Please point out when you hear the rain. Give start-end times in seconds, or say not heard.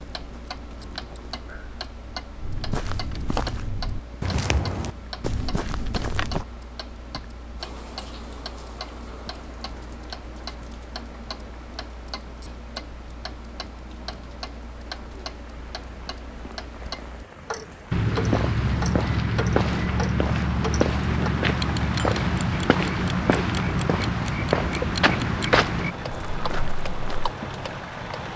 7.5-28.3.